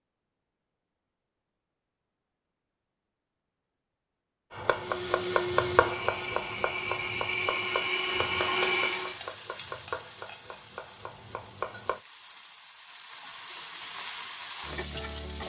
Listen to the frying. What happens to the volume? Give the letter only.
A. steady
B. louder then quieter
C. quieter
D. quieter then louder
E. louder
D.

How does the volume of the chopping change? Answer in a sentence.
The volume of the chopping goes down.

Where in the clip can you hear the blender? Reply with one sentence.
The blender can be heard from 4.6 to 9.2 s.